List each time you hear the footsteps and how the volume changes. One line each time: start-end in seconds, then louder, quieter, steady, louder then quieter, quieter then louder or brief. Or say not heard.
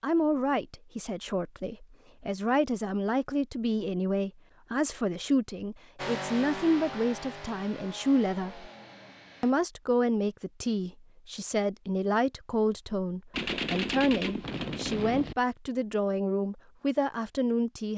not heard.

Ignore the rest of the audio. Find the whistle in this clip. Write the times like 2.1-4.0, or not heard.
not heard.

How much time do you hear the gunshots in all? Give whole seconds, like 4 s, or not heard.
2 s.